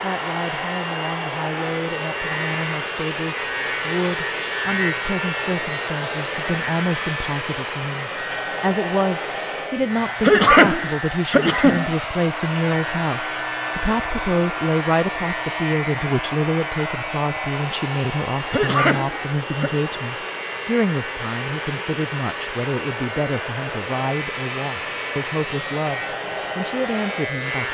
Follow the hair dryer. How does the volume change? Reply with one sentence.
The loudness of the hair dryer stays about the same.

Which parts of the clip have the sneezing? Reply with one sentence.
You can hear the sneezing from 10.2 to 11.9 s and from 18.5 to 19.8 s.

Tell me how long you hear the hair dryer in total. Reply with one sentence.
The hair dryer can be heard for 28 seconds in total.